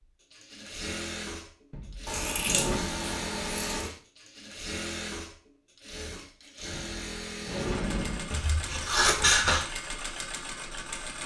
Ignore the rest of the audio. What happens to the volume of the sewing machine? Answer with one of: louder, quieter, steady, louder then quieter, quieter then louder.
steady.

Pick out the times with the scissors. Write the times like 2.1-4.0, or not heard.
2.0-3.9, 8.3-9.7.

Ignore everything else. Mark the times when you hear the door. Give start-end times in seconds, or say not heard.
1.7-2.9, 6.7-8.3.